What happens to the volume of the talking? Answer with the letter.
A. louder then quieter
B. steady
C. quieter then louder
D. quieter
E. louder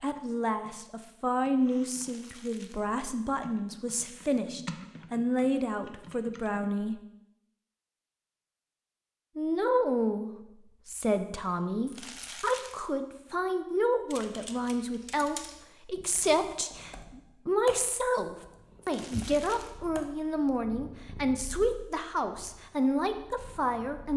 B.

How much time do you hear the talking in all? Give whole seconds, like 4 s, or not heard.
22 s.